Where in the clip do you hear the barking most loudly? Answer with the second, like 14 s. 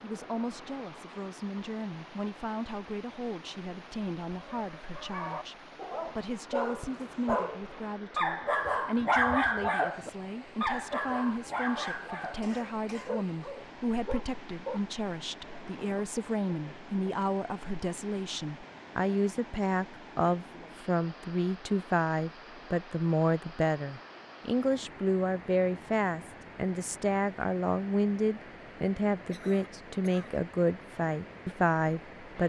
9 s.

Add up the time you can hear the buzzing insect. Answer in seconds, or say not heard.
not heard.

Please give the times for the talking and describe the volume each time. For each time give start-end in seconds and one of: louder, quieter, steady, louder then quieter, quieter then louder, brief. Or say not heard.
0.0-32.4 louder.